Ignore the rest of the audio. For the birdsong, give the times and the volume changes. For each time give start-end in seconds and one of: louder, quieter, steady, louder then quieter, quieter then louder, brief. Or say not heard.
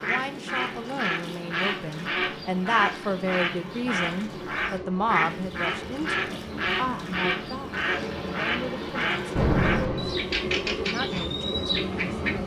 0.0-12.4 steady.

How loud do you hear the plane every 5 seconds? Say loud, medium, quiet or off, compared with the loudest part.
medium, medium, loud.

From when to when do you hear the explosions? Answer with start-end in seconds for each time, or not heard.
9.3-10.3.